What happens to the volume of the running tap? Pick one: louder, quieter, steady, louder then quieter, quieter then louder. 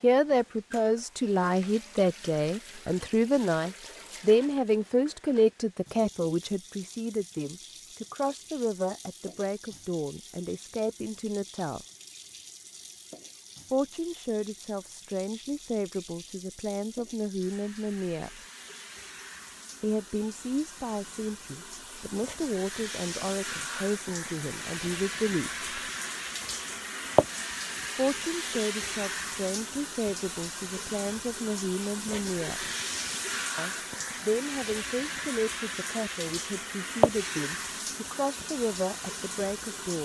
louder.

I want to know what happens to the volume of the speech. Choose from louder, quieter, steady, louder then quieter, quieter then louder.
quieter.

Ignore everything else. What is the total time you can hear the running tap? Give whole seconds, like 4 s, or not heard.
40 s.